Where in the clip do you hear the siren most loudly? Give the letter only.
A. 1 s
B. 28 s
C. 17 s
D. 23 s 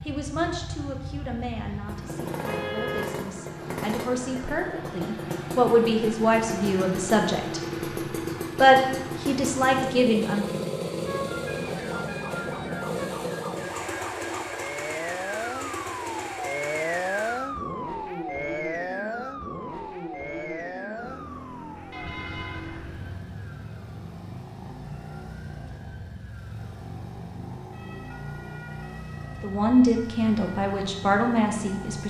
C.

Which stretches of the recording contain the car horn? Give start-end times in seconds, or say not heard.
2.5-3.0, 11.1-13.1, 21.9-23.1.